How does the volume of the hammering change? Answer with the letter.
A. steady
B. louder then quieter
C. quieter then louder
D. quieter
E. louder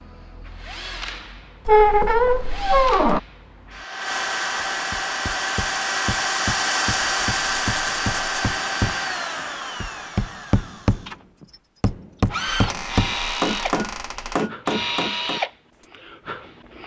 E.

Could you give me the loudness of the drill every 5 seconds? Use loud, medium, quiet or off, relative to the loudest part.
medium, loud, medium, medium.